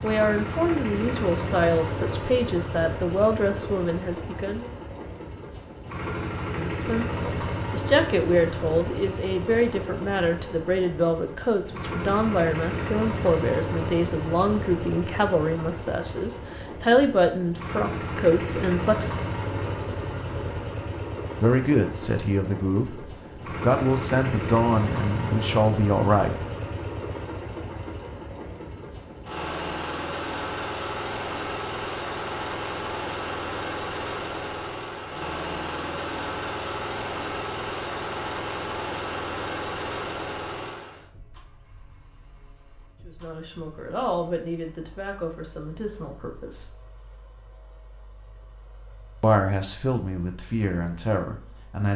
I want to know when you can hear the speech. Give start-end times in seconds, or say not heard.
0.0-4.7, 6.5-19.1, 21.4-26.4, 43.0-46.8, 49.2-51.9.